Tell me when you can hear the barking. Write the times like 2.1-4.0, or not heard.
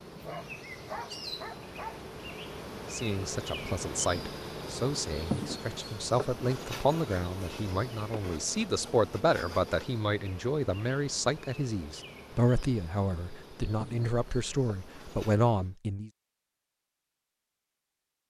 0.1-2.0.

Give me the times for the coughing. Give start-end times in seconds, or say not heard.
not heard.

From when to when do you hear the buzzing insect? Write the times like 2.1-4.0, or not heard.
0.0-15.8.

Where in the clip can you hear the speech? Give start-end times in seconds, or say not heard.
2.9-16.1.